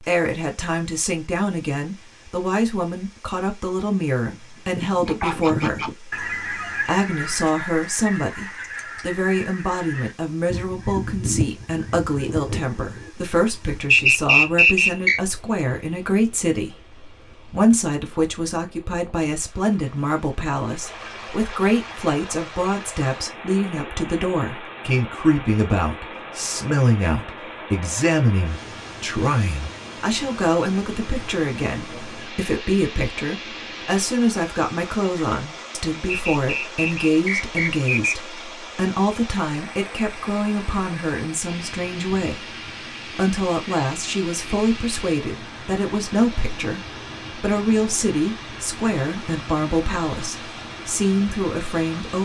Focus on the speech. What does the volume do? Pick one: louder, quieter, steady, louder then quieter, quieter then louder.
steady.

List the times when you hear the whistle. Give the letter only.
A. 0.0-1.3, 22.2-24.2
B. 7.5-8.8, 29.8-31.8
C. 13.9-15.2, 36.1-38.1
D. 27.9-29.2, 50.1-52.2
C.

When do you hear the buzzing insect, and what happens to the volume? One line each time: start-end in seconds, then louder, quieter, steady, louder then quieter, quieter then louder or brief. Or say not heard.
not heard.